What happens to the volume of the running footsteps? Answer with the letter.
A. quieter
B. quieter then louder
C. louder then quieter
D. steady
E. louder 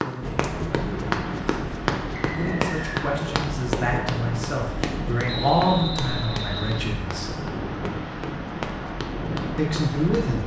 A.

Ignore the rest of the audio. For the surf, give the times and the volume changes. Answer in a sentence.
The surf can be heard from 0.2 to 10.4 s, at a steady volume.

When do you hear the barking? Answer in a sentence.
You can't hear the barking here.